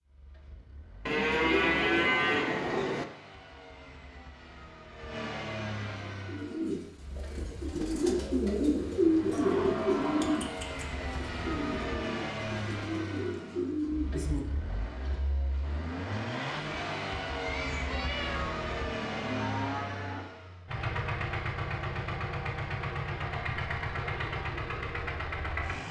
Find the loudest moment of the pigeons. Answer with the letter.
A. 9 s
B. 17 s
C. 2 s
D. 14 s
A.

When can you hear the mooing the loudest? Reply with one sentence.
The volume of the mooing peaks at 2 seconds.